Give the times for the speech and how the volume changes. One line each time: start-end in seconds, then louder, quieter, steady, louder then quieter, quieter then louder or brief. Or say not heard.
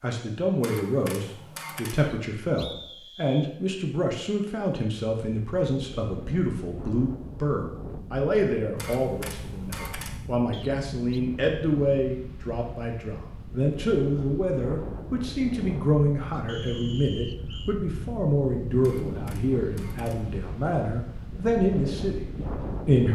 0.0-23.1 steady.